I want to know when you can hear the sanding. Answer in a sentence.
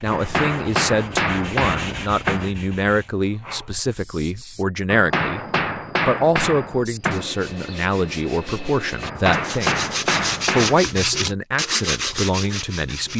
You can hear the sanding from 0.0 to 4.7 s and from 6.8 to 13.1 s.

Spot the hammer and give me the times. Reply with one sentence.
The hammer can be heard from 0.1 to 2.5 s, from 4.9 to 7.2 s and from 9.0 to 10.8 s.